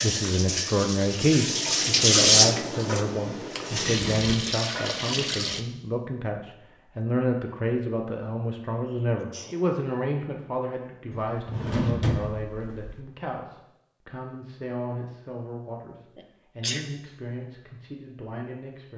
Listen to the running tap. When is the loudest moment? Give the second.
2 s.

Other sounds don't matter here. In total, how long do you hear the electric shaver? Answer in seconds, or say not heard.
not heard.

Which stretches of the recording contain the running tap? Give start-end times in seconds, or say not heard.
0.0-5.7.